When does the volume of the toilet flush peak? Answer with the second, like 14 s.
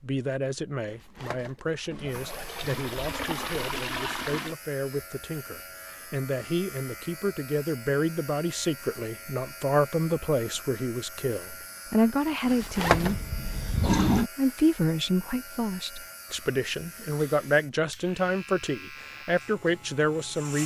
14 s.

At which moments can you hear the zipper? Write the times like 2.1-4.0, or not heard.
0.8-2.5, 12.4-13.2.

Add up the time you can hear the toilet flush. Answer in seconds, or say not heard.
4 s.